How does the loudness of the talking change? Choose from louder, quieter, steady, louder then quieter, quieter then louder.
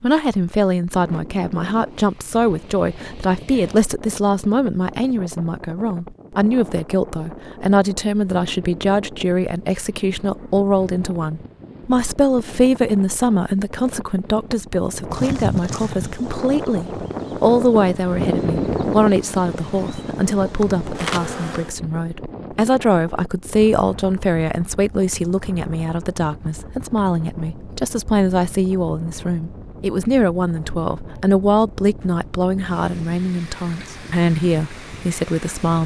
steady.